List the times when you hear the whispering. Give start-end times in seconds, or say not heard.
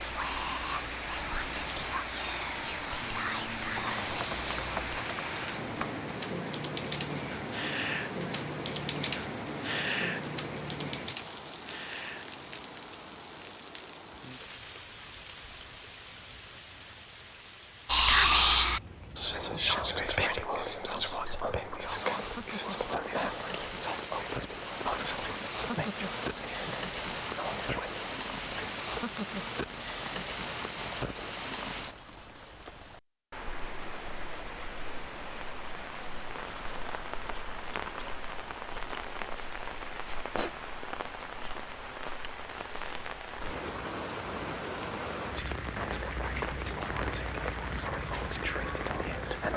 0.0-5.0, 17.9-28.2, 45.2-49.5.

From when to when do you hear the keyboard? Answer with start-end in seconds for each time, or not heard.
3.8-12.8.